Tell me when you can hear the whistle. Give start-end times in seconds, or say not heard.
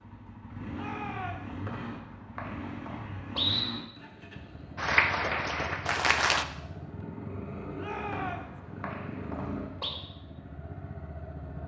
1.6-3.6, 8.1-9.9.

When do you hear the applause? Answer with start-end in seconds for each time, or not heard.
4.8-6.5.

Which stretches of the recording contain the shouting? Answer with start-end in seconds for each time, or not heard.
0.7-1.6, 7.8-8.6.